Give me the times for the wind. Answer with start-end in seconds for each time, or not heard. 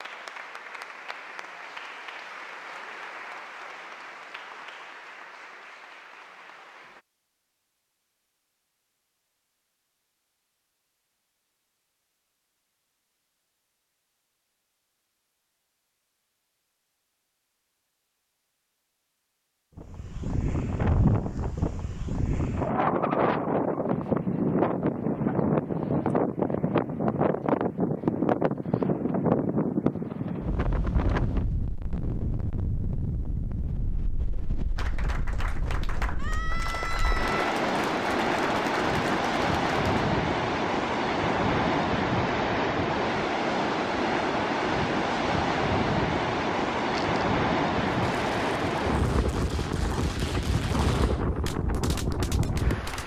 19.8-53.0.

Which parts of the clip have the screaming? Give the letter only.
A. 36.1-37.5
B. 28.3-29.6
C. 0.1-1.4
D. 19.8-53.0
A.